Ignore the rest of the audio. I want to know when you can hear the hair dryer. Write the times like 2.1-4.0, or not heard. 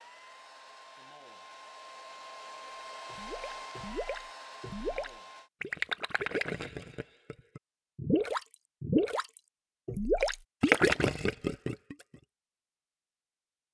0.0-5.5.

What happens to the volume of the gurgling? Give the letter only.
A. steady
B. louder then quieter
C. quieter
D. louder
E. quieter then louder
D.